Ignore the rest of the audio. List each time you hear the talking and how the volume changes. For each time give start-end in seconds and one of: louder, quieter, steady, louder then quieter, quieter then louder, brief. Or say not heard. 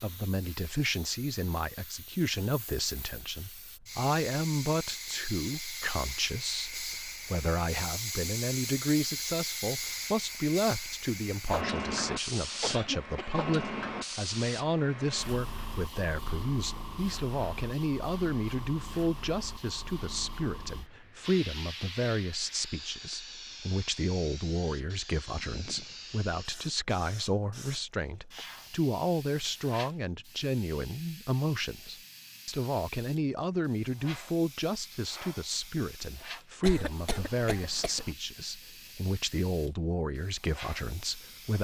0.0-41.5 steady.